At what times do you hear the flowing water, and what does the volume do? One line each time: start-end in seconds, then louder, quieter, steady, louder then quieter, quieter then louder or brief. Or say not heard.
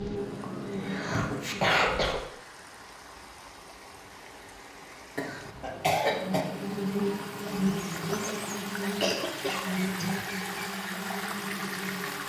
0.0-12.2 louder.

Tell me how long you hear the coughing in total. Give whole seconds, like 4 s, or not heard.
5 s.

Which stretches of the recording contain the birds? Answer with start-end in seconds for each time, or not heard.
not heard.